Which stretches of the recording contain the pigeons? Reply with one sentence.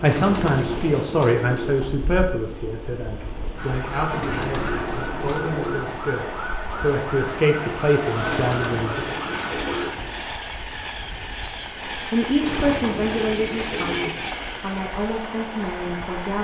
The pigeons can be heard from 0.1 to 2.0 s, from 4.1 to 6.2 s, from 8.2 to 10.2 s and from 12.4 to 14.5 s.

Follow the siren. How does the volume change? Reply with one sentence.
The volume of the siren stays about the same.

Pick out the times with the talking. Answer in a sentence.
The talking can be heard from 0.0 to 9.0 s and from 11.9 to 16.3 s.